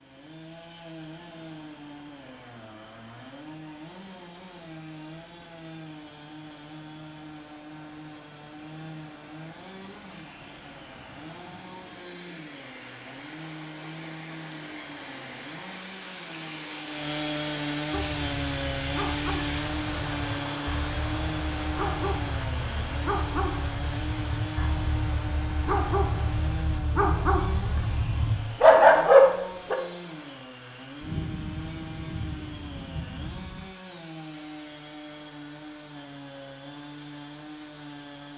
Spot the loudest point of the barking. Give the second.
29 s.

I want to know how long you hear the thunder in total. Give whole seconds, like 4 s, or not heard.
3 s.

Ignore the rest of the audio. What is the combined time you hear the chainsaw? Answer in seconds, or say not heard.
38 s.